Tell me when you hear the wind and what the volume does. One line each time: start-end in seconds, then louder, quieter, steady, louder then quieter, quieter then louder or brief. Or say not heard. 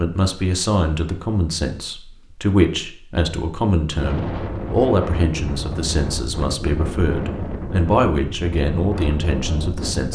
4.0-10.1 steady.